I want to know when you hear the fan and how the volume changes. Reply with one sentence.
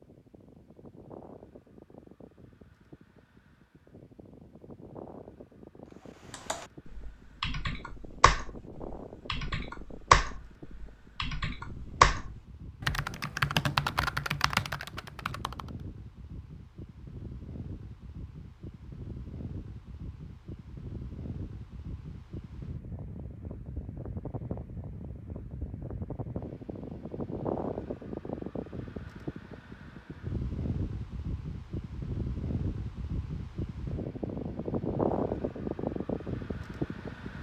You can hear the fan from 0.0 to 37.3 s, getting louder.